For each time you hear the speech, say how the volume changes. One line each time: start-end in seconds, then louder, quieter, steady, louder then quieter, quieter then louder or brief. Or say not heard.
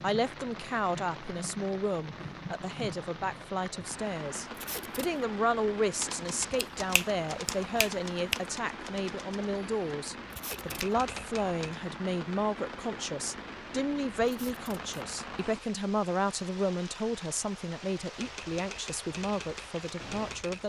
0.0-20.6 steady.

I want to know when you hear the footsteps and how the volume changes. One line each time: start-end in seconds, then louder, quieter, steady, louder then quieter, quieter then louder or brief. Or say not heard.
not heard.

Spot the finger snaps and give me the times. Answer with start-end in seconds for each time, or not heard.
6.5-8.4.